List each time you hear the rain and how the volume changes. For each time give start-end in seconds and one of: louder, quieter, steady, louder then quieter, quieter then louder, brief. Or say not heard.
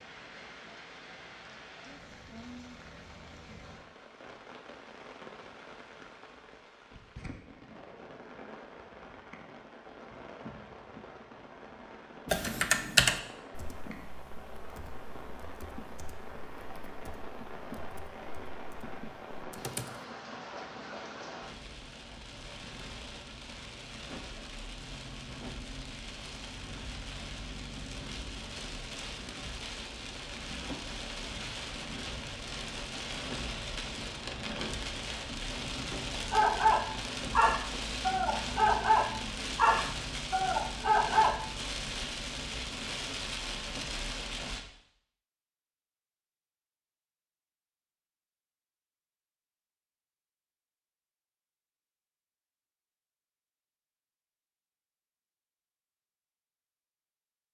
0.0-44.6 louder.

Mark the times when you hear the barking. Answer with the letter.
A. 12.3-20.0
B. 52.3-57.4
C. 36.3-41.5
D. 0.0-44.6
C.